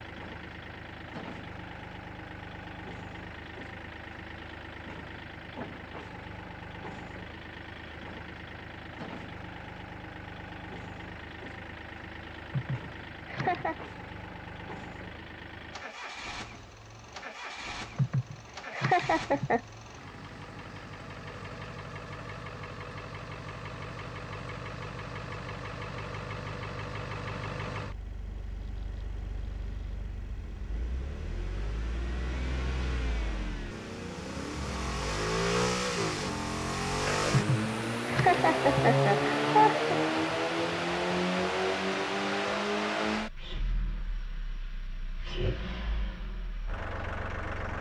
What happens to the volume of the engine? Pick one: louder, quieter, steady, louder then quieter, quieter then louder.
louder.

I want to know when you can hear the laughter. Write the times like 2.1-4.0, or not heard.
12.5-13.8, 17.9-19.6, 37.3-39.9.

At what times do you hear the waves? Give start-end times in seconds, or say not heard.
not heard.